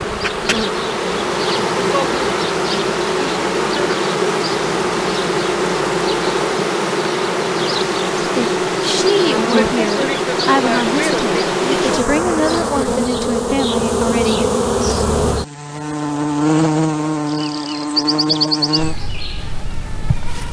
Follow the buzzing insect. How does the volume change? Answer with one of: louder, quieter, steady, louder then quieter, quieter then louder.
steady.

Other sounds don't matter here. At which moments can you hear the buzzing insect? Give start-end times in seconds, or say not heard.
0.0-20.4.